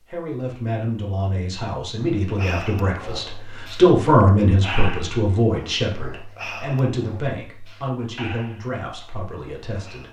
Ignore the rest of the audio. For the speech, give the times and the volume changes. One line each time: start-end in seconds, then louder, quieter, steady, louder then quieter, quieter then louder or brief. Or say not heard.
0.1-10.0 louder then quieter.